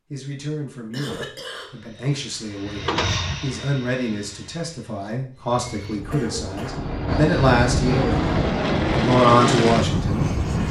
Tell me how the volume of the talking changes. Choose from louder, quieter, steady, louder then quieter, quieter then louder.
louder.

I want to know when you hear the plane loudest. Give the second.
9 s.